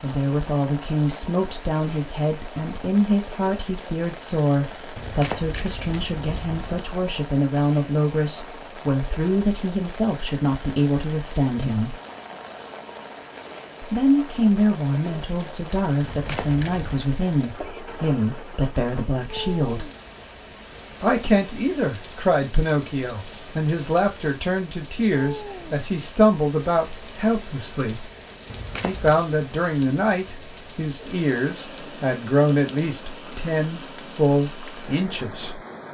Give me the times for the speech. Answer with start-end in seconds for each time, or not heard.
0.0-11.9, 13.8-19.9, 21.0-28.1, 28.8-35.6.